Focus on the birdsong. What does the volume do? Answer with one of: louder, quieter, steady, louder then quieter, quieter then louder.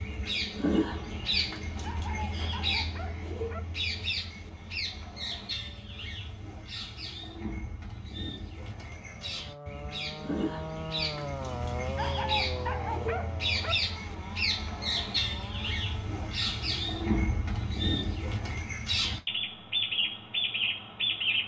quieter then louder.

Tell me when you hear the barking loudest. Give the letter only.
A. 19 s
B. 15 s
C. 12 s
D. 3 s
C.